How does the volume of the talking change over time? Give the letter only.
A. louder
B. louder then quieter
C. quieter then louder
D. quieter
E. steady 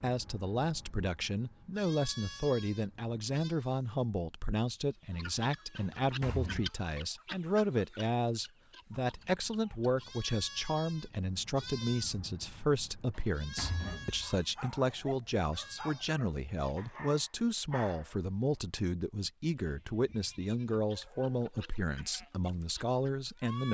E.